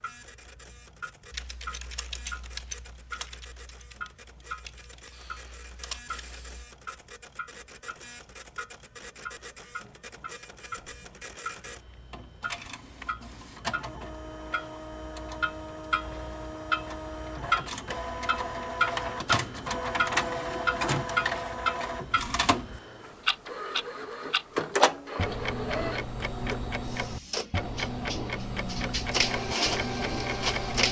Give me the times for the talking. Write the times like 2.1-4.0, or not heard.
not heard.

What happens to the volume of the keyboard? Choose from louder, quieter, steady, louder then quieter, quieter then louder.
quieter then louder.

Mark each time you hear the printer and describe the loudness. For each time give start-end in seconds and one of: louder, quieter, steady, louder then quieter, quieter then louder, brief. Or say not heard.
0.0-30.8 louder.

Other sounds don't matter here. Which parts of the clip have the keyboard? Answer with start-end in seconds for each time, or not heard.
1.3-6.7.